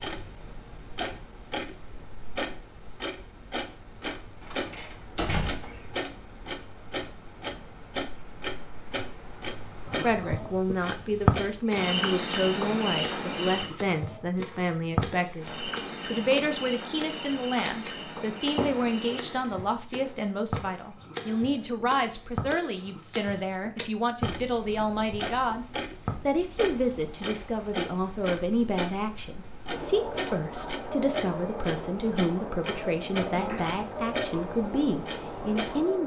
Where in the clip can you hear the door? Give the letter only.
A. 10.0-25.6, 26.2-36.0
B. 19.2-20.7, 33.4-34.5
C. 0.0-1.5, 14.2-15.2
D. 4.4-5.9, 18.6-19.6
D.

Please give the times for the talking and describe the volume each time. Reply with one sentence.
You can hear the talking from 10.0 to 25.6 s, at a steady volume; and from 26.2 to 36.0 s, at a steady volume.